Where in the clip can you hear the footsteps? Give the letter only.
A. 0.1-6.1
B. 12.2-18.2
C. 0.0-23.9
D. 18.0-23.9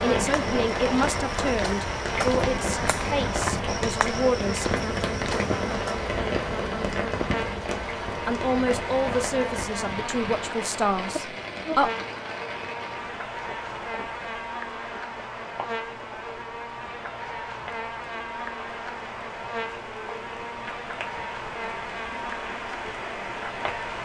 A.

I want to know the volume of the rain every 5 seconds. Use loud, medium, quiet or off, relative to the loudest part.
loud, loud, medium, quiet, medium.